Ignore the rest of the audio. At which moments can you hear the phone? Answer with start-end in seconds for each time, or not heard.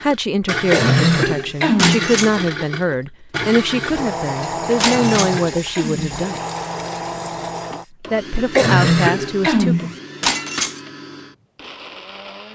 not heard.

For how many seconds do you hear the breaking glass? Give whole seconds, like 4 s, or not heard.
2 s.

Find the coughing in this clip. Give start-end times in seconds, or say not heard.
0.7-2.1, 4.8-6.2, 8.5-9.9.